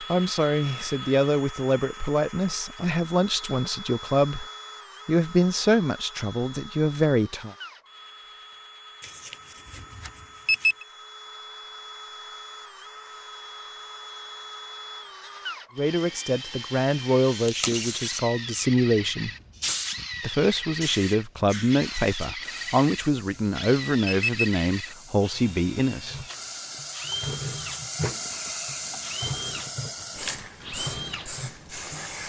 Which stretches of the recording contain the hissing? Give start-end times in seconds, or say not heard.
17.3-32.2.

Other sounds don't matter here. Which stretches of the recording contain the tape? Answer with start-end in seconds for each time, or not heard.
17.3-18.1.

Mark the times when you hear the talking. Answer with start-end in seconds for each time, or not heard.
0.0-4.5, 5.0-7.5, 15.8-19.3, 20.2-26.2.